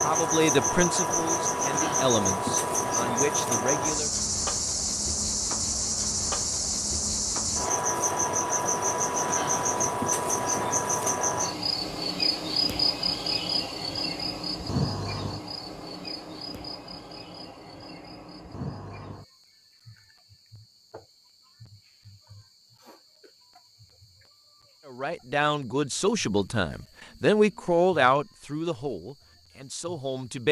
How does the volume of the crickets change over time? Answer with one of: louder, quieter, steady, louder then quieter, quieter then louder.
quieter.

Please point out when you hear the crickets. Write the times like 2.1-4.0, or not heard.
0.0-30.4.